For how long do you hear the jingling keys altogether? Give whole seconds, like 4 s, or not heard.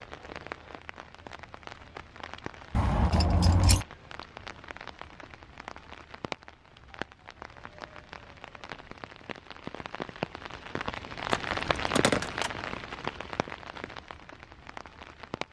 2 s.